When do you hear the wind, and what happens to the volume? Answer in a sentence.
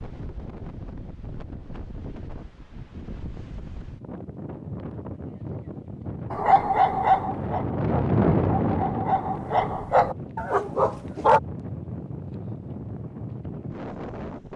The wind can be heard from 0.0 to 14.5 s, getting louder then quieter.